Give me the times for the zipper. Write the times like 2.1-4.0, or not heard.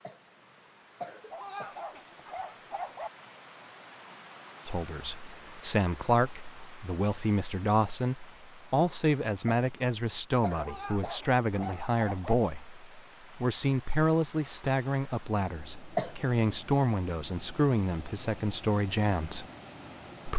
not heard.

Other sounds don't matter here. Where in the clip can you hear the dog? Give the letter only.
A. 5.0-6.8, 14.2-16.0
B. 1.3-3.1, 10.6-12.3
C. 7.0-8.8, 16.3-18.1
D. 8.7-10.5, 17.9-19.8
B.